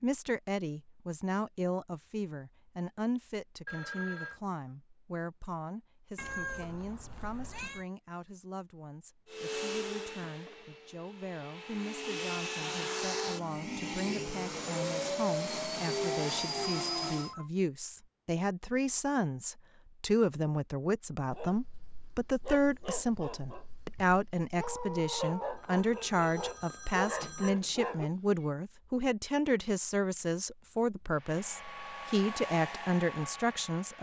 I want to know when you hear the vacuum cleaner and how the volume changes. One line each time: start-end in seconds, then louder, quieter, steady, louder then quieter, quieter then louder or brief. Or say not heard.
9.2-17.4 louder
31.1-33.9 brief.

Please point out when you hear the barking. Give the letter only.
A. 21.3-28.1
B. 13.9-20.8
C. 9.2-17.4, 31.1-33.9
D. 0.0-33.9
A.